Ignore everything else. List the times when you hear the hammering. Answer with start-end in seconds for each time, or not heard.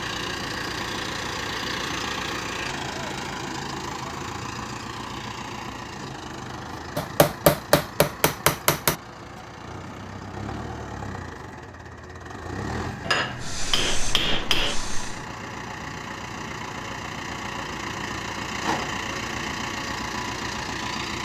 7.0-8.9, 13.0-14.8.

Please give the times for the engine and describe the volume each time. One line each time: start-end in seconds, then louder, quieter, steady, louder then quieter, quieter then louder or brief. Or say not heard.
0.0-21.2 quieter then louder.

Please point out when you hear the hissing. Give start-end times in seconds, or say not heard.
13.3-15.2.